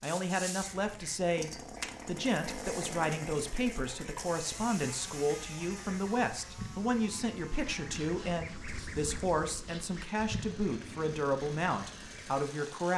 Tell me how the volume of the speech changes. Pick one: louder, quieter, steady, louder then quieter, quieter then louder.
steady.